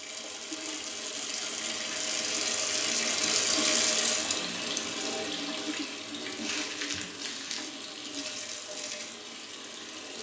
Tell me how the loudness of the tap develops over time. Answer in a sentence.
The loudness of the tap goes up, then down.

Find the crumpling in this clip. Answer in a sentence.
You can hear the crumpling from 6.4 to 7.8 s.